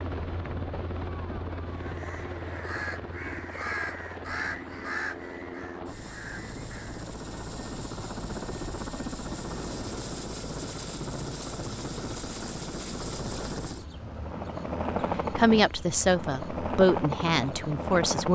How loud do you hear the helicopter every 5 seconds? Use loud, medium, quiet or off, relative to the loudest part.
medium, medium, loud, loud.